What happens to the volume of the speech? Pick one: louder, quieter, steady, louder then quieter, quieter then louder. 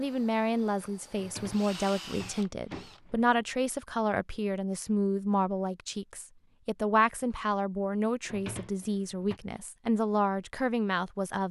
steady.